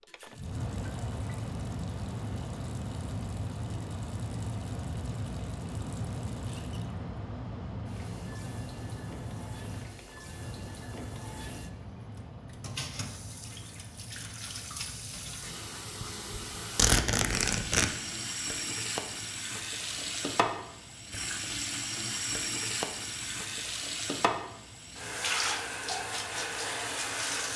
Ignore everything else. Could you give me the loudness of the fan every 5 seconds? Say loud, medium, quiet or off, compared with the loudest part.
loud, loud, medium, quiet, quiet, quiet.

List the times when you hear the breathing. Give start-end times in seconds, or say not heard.
not heard.